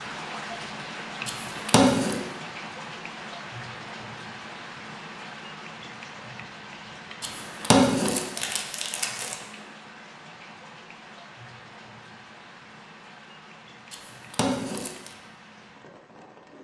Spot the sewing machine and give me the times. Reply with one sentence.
The sewing machine can't be heard in this clip.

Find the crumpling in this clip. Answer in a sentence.
You can hear the crumpling from 1.2 to 2.1 s, from 7.2 to 9.3 s and from 13.9 to 15.2 s.